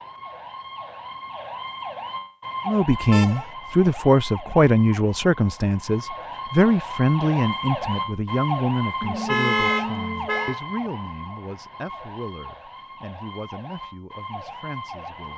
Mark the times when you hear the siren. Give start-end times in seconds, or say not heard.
0.0-15.3.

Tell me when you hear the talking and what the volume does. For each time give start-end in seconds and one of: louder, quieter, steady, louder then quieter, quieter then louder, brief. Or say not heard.
2.6-15.3 quieter.